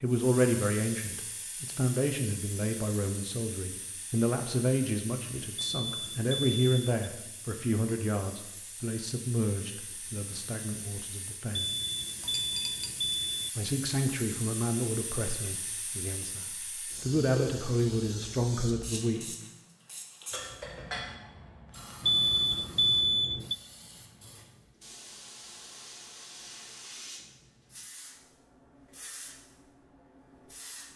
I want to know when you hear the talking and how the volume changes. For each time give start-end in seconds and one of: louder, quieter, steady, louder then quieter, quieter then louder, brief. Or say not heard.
0.0-11.7 quieter
13.6-19.2 quieter then louder.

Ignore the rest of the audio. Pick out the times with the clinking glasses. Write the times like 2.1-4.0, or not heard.
12.2-13.1, 20.3-21.2.